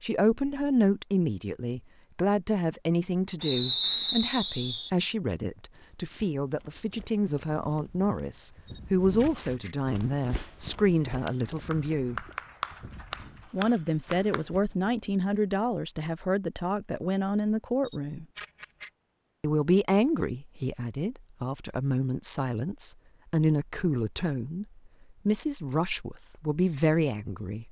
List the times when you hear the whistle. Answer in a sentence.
You can hear the whistle from 3.4 to 4.9 s.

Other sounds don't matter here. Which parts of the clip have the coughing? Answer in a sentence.
You can't hear the coughing here.